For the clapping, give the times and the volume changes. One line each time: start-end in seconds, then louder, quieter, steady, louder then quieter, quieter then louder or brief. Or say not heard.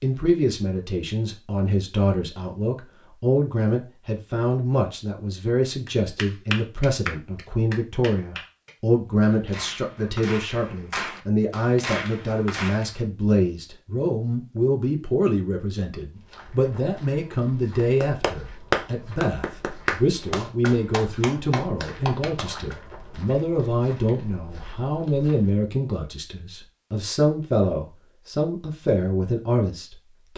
5.8-12.9 quieter then louder
17.8-22.8 quieter.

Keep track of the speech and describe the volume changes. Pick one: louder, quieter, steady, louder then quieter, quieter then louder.
steady.